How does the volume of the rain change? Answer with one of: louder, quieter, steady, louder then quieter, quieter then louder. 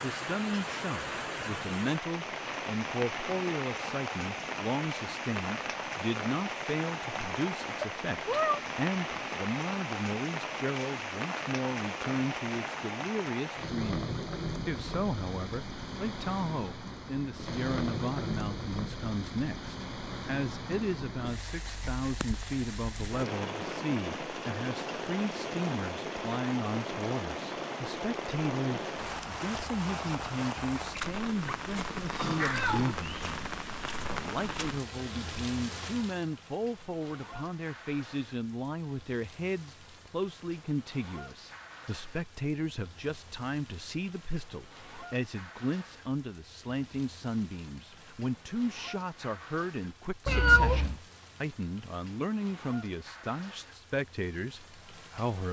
quieter.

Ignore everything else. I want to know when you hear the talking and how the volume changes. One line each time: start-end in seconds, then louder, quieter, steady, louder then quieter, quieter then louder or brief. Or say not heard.
0.0-55.4 steady.